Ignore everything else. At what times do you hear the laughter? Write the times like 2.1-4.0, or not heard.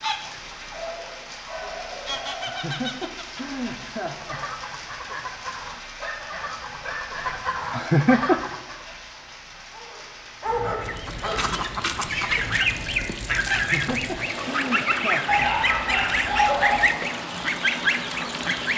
2.5-4.4, 7.7-8.4, 13.5-15.4.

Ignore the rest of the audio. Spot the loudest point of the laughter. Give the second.
8 s.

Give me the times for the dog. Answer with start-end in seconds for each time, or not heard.
0.7-2.6, 6.0-7.3, 9.7-11.4, 15.2-16.9.